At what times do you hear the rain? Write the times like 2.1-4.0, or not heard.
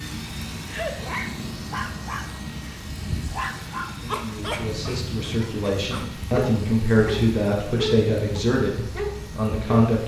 0.0-10.0.